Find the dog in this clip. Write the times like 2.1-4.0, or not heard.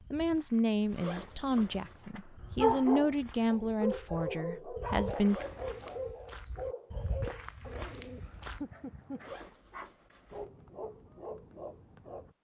1.7-12.3.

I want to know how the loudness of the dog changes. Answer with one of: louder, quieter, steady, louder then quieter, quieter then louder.
quieter.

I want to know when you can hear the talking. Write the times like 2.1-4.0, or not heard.
0.1-5.5.